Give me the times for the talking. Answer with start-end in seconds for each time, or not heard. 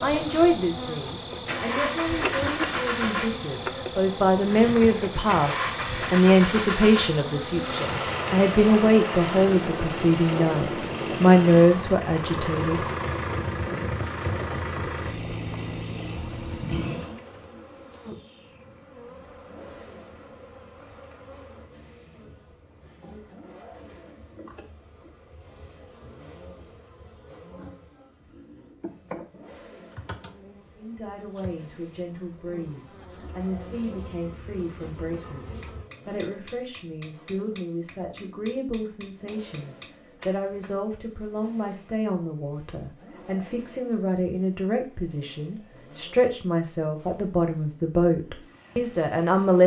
0.0-12.8, 30.8-49.6.